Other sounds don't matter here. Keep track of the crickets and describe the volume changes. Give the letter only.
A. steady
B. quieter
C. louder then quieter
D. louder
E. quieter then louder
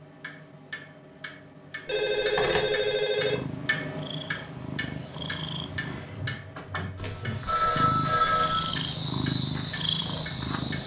D.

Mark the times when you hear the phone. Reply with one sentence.
The phone can be heard from 1.9 to 3.4 s and from 7.0 to 8.8 s.